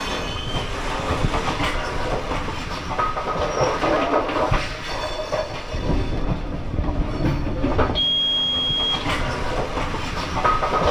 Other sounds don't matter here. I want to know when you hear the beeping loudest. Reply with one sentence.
The volume of the beeping peaks at 8 seconds.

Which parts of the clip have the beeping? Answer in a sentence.
You can hear the beeping from 7.9 to 9.4 s.